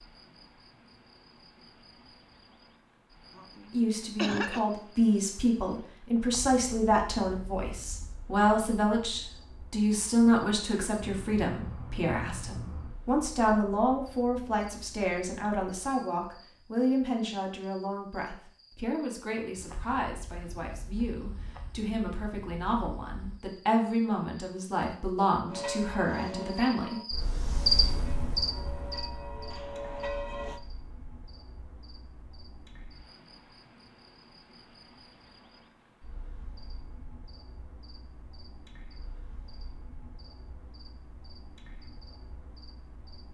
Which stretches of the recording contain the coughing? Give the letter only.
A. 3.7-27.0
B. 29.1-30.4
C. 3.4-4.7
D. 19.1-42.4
C.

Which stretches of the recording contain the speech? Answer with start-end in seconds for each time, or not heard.
3.7-27.0.